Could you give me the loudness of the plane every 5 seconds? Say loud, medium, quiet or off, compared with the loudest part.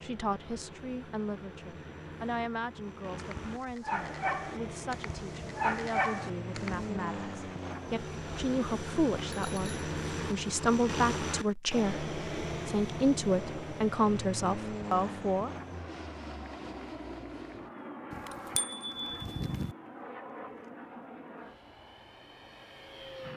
medium, loud, loud, medium, medium.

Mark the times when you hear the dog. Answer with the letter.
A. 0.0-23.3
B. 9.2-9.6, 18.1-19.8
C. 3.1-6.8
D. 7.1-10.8
C.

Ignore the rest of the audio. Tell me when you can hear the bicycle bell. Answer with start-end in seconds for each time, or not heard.
9.2-9.6, 18.1-19.8.